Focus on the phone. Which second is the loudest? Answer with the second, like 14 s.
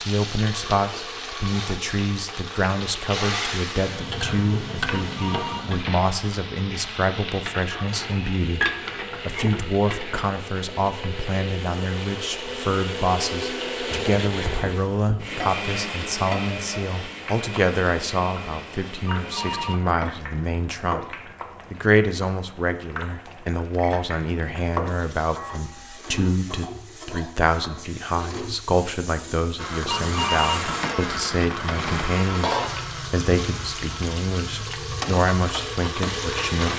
30 s.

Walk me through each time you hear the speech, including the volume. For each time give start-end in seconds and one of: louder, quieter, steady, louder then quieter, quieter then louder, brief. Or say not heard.
0.1-36.7 steady.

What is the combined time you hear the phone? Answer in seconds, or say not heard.
5 s.